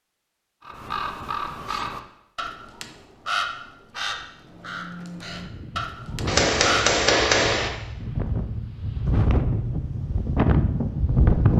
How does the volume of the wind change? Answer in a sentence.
The volume of the wind goes down, then up.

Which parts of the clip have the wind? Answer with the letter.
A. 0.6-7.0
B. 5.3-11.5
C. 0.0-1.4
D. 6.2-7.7
B.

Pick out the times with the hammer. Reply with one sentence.
You can hear the hammer from 6.2 to 7.7 s.